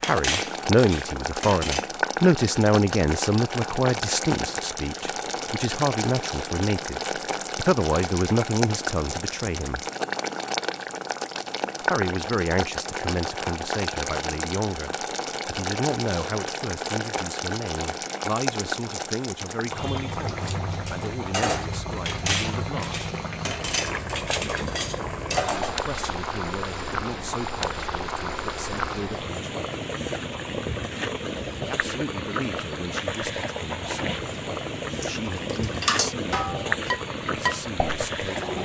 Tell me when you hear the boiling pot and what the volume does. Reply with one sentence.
You can hear the boiling pot from 0.0 to 38.6 s, at a steady volume.